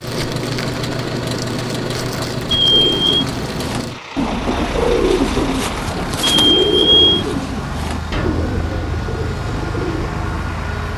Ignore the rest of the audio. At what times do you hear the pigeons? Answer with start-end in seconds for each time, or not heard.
2.6-10.1.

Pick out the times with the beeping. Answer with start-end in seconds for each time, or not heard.
2.5-3.2, 6.2-7.2.